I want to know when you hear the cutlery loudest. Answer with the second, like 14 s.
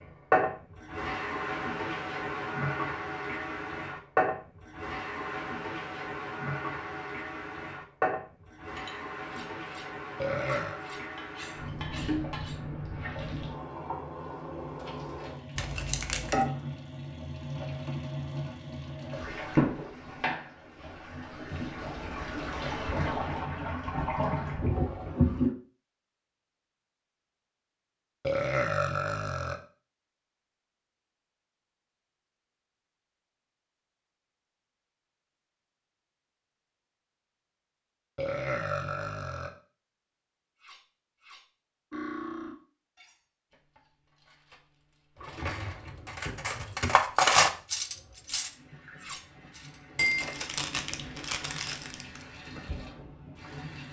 47 s.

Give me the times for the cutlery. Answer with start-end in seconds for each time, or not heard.
8.8-12.6, 40.6-44.5, 45.1-49.8.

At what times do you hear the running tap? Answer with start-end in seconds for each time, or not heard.
0.0-25.6, 45.1-53.8.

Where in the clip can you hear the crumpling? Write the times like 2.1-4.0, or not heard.
15.6-16.4, 50.0-52.2.